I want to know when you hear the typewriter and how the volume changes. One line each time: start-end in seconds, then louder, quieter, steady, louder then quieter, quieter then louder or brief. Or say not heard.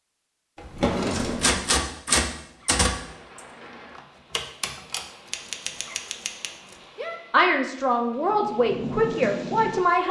1.3-7.2 quieter.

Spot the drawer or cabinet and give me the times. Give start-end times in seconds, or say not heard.
0.6-1.6.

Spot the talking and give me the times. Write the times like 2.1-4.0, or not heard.
7.3-10.0.